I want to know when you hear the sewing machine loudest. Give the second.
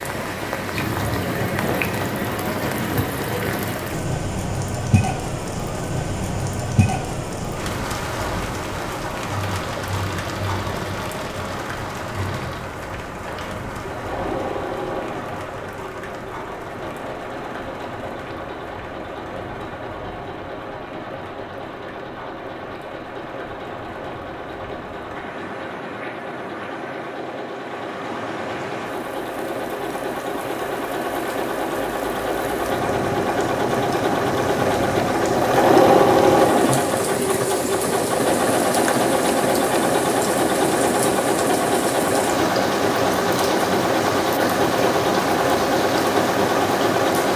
36 s.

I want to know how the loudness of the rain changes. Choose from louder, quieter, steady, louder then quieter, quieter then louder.
quieter then louder.